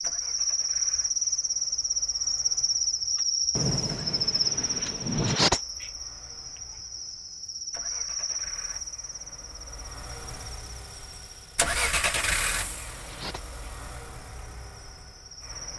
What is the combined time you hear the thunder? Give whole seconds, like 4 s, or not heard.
2 s.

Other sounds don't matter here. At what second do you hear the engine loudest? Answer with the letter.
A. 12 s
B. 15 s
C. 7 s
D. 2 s
A.